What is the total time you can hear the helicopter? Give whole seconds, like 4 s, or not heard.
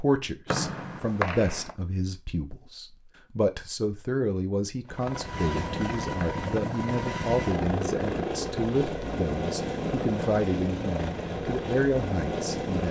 8 s.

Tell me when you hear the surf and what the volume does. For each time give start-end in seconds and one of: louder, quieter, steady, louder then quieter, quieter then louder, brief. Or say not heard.
not heard.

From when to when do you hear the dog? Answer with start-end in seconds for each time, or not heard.
not heard.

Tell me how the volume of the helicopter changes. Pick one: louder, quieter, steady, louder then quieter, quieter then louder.
steady.